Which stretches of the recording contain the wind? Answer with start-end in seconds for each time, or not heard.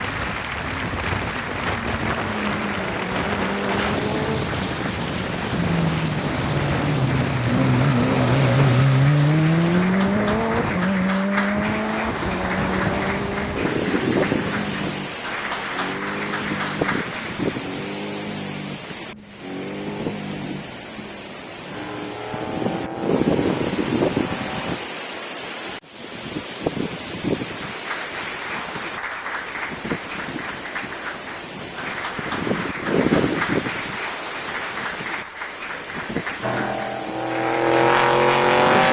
0.0-38.8.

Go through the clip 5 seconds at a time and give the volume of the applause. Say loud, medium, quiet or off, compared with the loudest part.
loud, loud, loud, loud, off, loud, loud, loud.